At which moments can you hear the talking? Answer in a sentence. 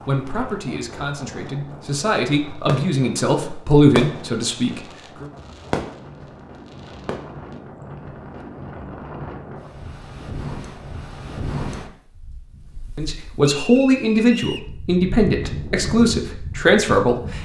You can hear the talking from 0.0 to 5.2 s and from 12.9 to 17.4 s.